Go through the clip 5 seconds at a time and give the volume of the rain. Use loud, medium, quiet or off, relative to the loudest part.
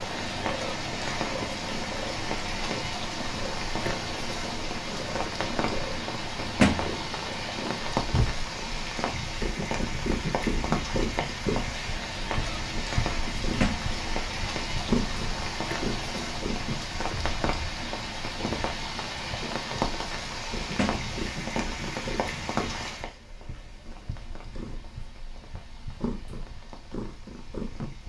loud, loud, loud, loud, loud, quiet.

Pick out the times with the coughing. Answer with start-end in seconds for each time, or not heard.
not heard.